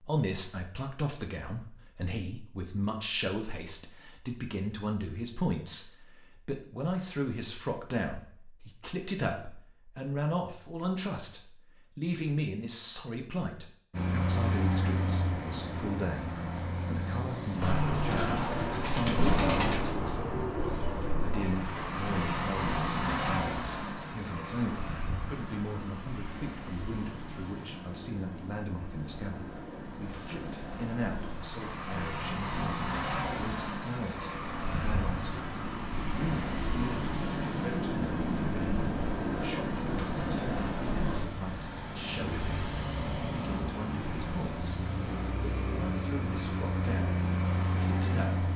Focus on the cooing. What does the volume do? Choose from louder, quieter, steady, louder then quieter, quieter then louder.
louder then quieter.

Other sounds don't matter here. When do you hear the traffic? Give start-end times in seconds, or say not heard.
13.9-48.5.